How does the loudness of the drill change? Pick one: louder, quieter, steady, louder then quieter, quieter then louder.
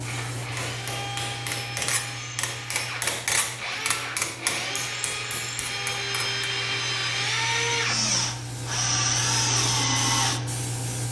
louder.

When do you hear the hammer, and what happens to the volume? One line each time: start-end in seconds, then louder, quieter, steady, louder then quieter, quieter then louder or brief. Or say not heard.
0.3-6.5 louder then quieter.